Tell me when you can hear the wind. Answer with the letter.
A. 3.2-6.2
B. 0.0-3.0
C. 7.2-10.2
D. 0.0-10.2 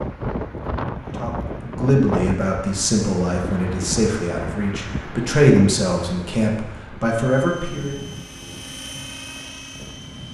D.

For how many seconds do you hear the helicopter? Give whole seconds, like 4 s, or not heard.
3 s.